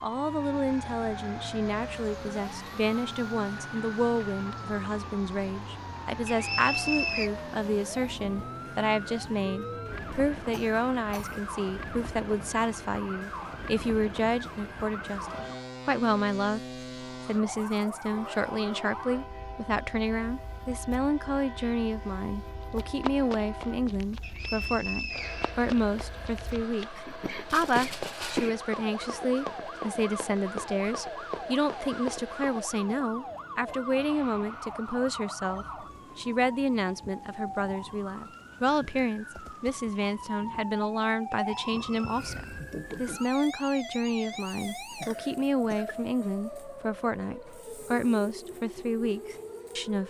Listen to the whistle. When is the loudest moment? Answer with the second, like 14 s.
7 s.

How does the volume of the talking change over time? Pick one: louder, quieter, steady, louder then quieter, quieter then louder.
steady.